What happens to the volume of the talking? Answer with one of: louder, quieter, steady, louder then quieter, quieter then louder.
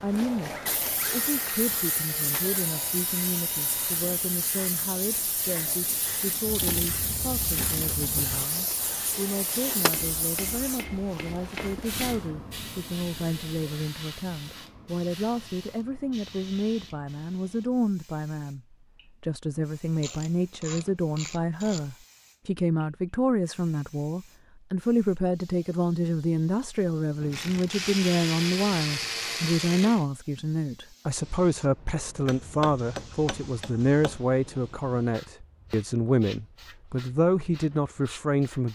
louder.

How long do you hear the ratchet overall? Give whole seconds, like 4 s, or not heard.
7 s.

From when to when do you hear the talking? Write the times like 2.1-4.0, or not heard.
0.0-38.7.